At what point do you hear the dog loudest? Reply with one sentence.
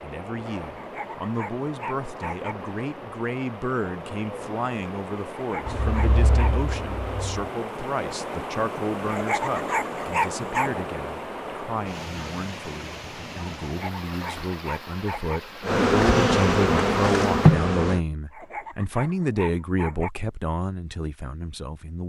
The loudest moment of the dog is at 10 seconds.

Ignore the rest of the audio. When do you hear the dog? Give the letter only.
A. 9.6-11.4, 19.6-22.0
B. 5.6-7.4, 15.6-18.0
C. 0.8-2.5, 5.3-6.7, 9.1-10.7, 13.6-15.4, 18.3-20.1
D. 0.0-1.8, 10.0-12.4
C.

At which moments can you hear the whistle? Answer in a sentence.
The whistle can't be heard in this clip.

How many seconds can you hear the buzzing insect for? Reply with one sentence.
You can hear the buzzing insect for 4 seconds altogether.